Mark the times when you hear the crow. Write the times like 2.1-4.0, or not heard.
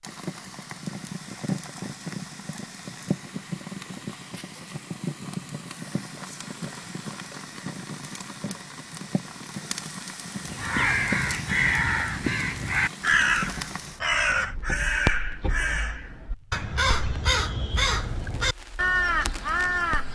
10.4-20.1.